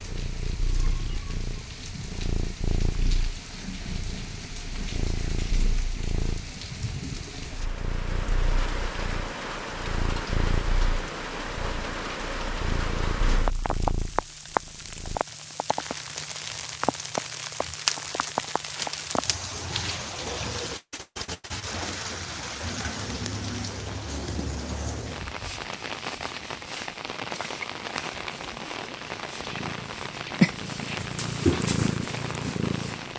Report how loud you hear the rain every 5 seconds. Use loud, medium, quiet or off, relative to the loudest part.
medium, medium, loud, loud, loud, loud, medium.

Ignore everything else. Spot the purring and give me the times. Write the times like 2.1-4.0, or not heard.
0.0-15.2, 29.4-33.1.